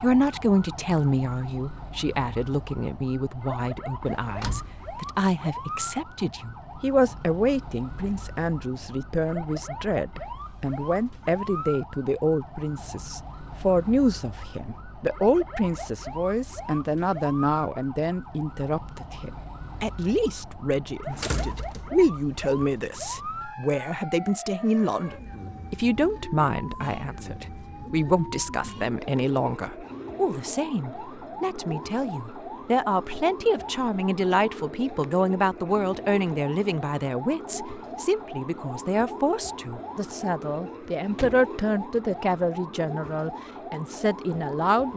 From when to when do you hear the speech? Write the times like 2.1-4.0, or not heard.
0.0-44.9.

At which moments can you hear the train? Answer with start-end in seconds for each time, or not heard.
not heard.